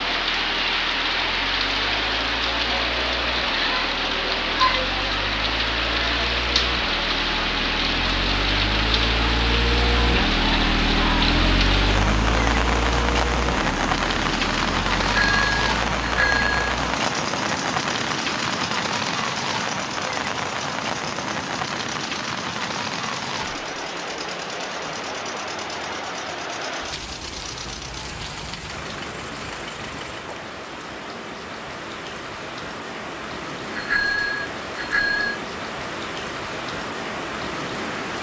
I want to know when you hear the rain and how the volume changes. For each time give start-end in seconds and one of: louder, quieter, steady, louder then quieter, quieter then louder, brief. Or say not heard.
0.0-38.1 quieter.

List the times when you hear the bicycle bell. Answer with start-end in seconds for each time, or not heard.
15.1-16.7, 33.7-35.4.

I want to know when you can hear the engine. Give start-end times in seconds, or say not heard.
0.0-30.4.